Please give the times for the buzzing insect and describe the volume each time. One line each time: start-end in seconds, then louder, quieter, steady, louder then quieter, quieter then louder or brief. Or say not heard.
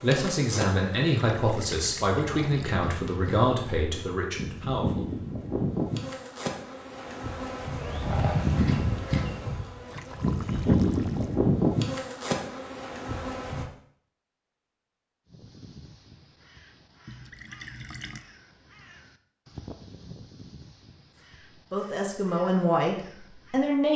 0.0-13.7 louder.